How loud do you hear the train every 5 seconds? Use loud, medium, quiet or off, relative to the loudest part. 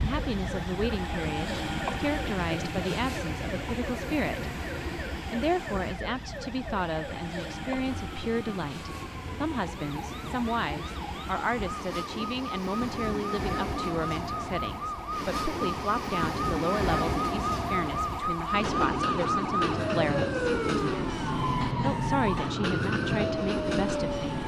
loud, medium, medium, loud, loud.